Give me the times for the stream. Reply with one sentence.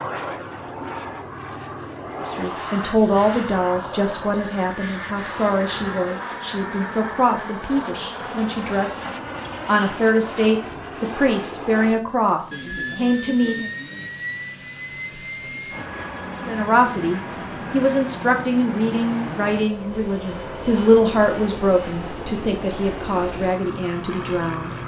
The stream can't be heard in this clip.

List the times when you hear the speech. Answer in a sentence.
You can hear the speech from 2.2 to 13.7 s and from 16.4 to 24.8 s.